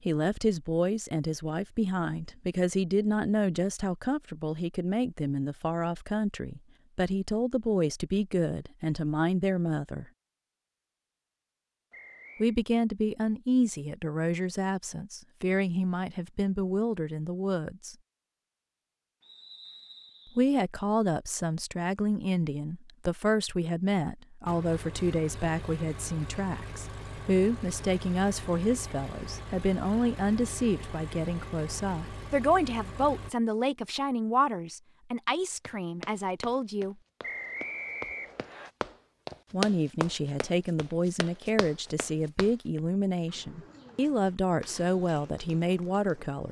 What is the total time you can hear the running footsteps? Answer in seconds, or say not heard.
7 s.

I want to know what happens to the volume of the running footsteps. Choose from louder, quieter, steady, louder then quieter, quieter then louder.
louder then quieter.